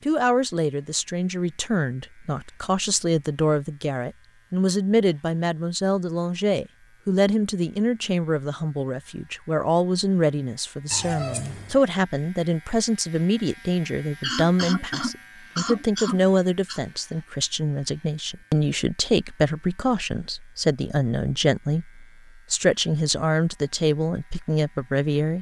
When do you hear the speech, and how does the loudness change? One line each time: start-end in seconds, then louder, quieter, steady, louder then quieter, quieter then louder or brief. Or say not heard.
0.1-25.3 steady.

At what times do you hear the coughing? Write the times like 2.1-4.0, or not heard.
14.2-16.8.